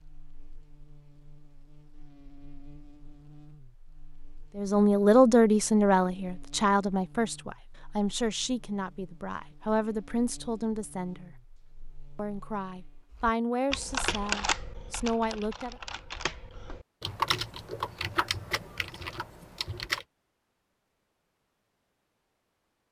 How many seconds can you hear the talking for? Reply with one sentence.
You can hear the talking for 10 seconds altogether.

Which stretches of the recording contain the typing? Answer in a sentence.
The typing can be heard from 13.1 to 20.1 s.